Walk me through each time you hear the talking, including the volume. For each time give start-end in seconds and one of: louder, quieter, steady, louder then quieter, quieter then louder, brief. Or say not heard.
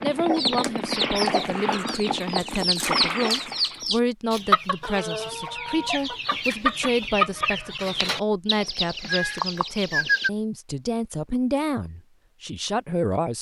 0.0-13.3 steady.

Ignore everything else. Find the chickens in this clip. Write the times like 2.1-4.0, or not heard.
0.1-10.3.